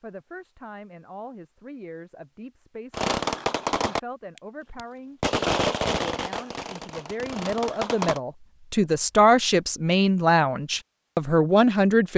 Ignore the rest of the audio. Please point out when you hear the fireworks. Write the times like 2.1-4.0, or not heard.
2.9-8.2.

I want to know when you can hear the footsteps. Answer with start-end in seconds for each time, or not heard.
not heard.